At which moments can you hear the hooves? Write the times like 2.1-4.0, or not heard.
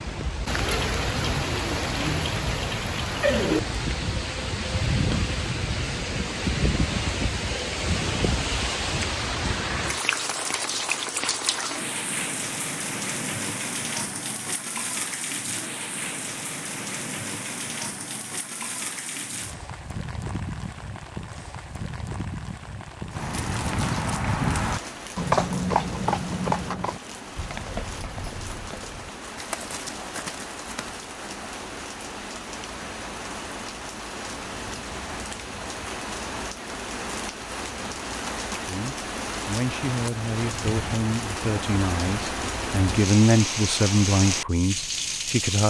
23.1-31.6.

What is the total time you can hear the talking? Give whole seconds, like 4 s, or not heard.
7 s.